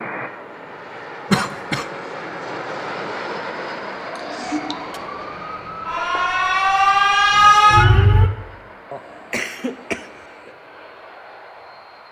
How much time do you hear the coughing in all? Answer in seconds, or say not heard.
3 s.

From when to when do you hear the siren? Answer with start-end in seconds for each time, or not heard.
4.4-8.3.